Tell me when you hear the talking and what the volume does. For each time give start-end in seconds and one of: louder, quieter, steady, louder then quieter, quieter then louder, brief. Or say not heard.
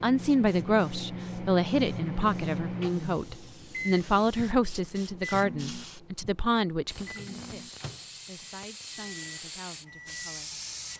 0.0-10.7 quieter.